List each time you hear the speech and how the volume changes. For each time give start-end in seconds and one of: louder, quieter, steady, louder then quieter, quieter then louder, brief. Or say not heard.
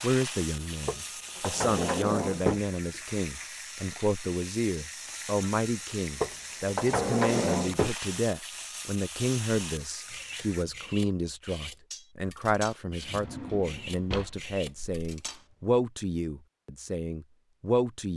0.0-18.1 steady.